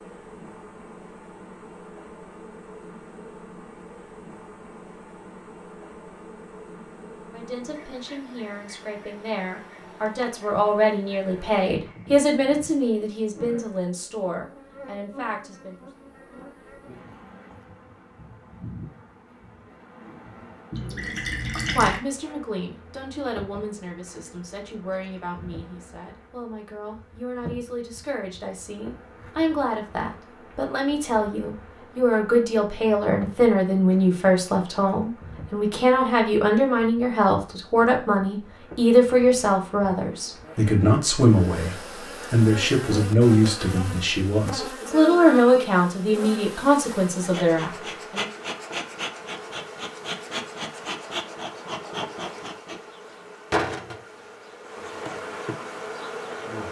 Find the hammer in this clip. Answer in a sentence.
You can't hear the hammer here.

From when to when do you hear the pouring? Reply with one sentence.
The pouring can be heard from 20.7 to 22.0 s.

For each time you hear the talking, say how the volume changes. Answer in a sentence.
You can hear the talking from 7.3 to 15.8 s, getting louder then quieter; and from 20.8 to 48.2 s, getting louder.